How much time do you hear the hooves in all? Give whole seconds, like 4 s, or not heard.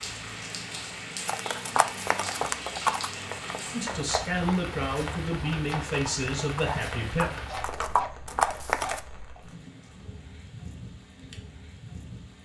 8 s.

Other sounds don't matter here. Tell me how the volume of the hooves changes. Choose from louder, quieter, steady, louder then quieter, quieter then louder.
quieter then louder.